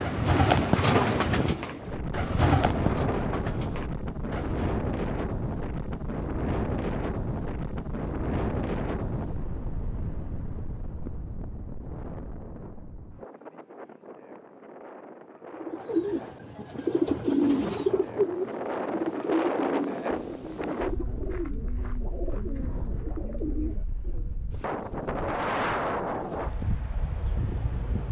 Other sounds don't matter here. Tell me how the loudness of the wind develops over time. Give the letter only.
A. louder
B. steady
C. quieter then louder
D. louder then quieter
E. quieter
C.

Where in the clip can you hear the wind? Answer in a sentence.
You can hear the wind from 0.0 to 28.0 s.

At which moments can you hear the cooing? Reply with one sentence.
The cooing can be heard from 0.0 to 4.7 s and from 15.5 to 24.3 s.